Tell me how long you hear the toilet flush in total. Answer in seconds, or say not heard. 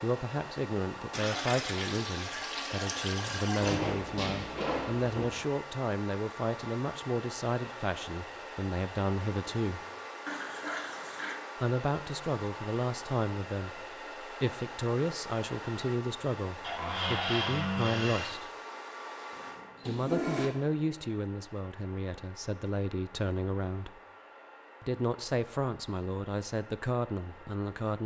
5 s.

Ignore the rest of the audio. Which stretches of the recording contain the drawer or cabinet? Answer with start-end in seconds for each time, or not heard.
3.6-5.3, 16.6-18.4.